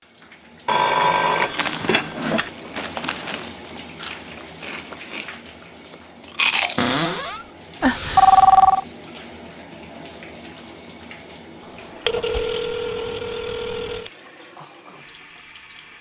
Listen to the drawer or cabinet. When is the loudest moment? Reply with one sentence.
The volume of the drawer or cabinet peaks at 7 seconds.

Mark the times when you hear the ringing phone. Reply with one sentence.
You can hear the ringing phone from 0.7 to 2.5 s, from 7.8 to 8.8 s and from 12.1 to 14.1 s.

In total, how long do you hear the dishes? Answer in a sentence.
You can't hear the dishes here.